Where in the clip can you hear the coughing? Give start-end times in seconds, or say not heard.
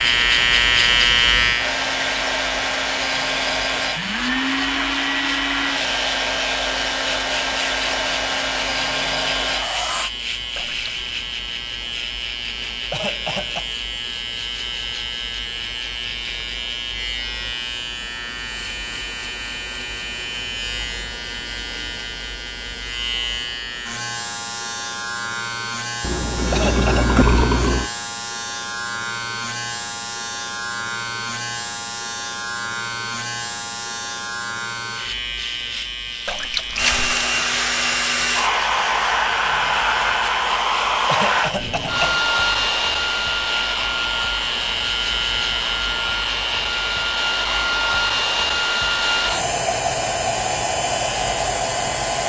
12.9-13.7, 26.5-27.2, 41.0-42.3.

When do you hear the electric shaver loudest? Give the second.
1 s.